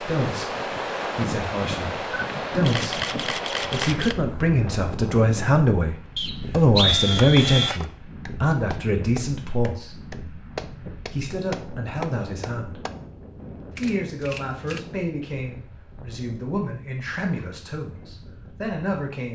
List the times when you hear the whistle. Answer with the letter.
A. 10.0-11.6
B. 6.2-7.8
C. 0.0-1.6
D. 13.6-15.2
B.